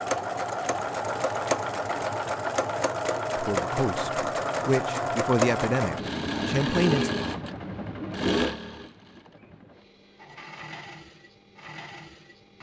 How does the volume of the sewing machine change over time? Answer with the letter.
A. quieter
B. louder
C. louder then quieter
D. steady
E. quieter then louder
A.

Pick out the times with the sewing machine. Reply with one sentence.
The sewing machine can be heard from 0.0 to 12.5 s.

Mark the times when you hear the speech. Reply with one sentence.
You can hear the speech from 3.4 to 7.1 s.